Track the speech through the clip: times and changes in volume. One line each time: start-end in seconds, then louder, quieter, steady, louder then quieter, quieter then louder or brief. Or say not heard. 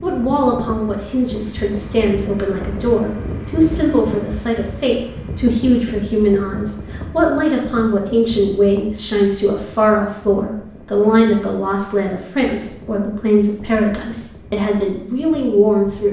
0.0-16.0 steady.